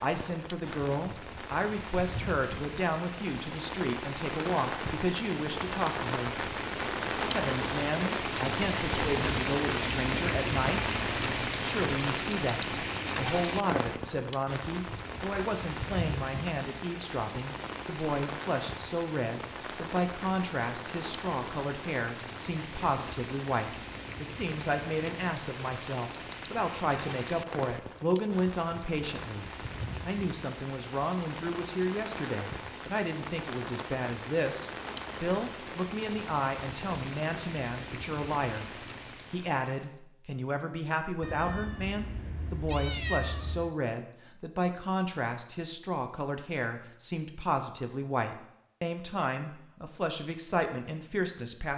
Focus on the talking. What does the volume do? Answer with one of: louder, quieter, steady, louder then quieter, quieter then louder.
steady.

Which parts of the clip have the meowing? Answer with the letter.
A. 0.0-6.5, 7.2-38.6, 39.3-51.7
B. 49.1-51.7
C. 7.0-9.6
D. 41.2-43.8
D.